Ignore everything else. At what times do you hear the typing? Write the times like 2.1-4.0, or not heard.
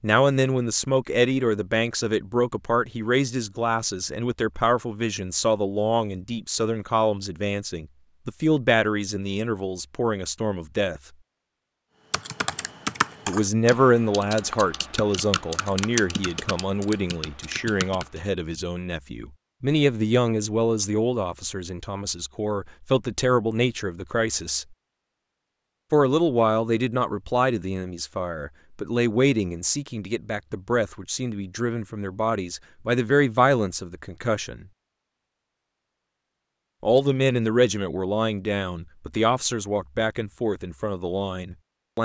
12.1-18.2.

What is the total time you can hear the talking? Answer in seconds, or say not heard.
36 s.